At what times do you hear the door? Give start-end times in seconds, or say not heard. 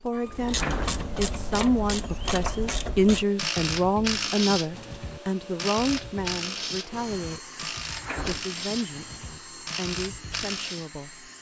0.1-1.1, 7.8-8.4.